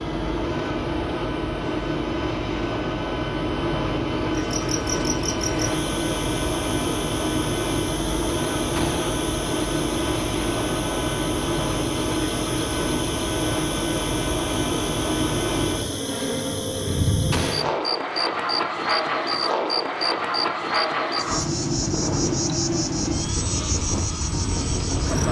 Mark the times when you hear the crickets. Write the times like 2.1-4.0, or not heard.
4.3-25.2.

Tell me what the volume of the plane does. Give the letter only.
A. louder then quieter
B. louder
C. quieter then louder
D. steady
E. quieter
D.